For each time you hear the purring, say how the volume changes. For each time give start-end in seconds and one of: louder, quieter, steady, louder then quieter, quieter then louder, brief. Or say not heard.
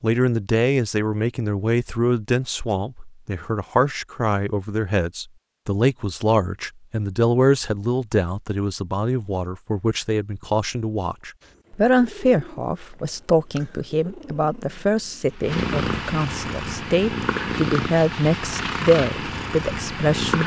11.4-20.4 louder.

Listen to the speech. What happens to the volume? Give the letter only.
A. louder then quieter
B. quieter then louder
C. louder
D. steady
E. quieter
D.